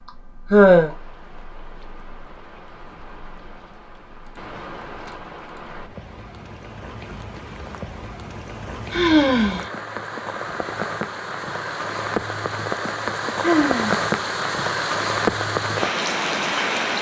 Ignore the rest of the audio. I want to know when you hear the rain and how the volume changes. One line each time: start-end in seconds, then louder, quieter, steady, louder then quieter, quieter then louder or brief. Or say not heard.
0.0-16.9 louder.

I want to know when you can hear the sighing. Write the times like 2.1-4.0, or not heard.
0.5-0.9, 8.9-9.7, 13.4-13.9.